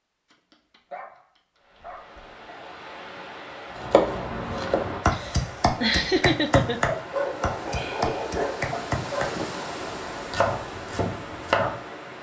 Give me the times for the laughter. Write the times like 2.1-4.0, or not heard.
4.7-6.8.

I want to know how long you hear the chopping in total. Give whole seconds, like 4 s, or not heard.
8 s.